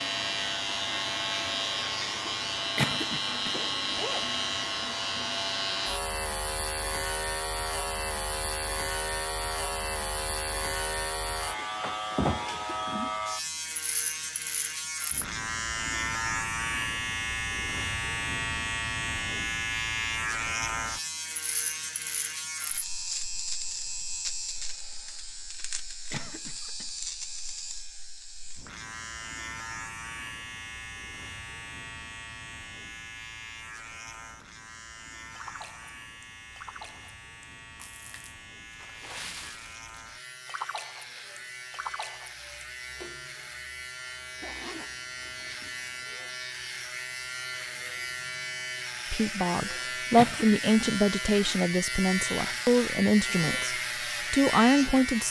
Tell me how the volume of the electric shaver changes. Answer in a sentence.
The volume of the electric shaver goes down, then up.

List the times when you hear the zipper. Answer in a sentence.
You can hear the zipper from 3.9 to 4.3 s and from 44.4 to 46.0 s.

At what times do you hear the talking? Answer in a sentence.
The talking can be heard from 49.1 to 55.2 s.